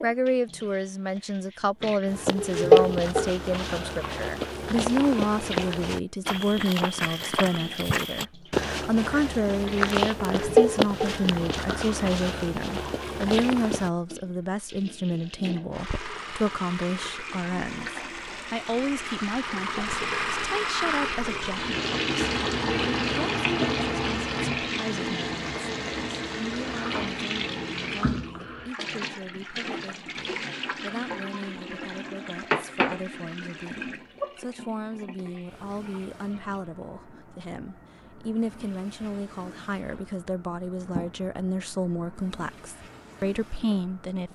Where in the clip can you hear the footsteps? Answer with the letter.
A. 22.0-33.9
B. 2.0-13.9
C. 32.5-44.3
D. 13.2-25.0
B.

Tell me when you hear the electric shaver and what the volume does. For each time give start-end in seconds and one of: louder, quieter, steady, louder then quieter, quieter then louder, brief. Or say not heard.
not heard.